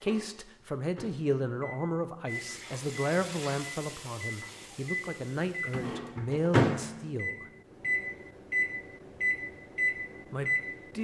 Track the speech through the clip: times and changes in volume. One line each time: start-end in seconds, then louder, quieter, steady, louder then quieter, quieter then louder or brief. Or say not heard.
0.0-7.5 steady
10.3-10.9 brief.